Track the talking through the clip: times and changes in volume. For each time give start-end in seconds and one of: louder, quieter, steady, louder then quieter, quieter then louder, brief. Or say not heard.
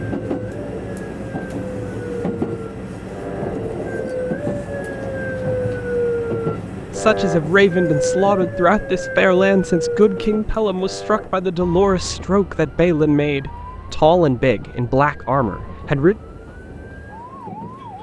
6.9-16.1 steady.